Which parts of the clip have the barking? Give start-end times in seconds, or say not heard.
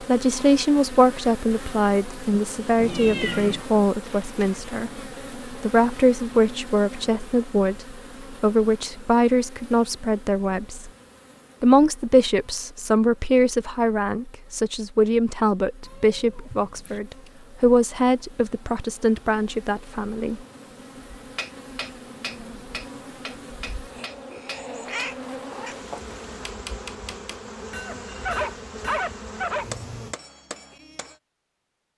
27.9-29.6.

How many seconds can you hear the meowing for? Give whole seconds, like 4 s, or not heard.
3 s.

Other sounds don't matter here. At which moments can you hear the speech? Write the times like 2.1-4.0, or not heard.
0.0-10.9, 11.6-20.4.